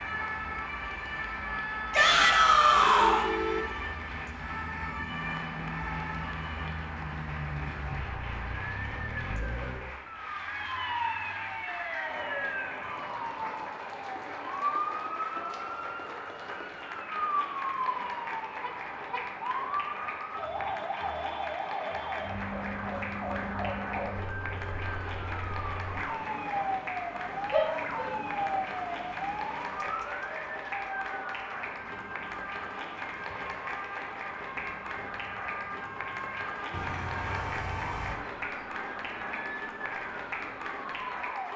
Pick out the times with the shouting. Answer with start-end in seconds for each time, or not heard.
1.9-3.2, 27.5-28.6.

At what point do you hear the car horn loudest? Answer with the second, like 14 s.
3 s.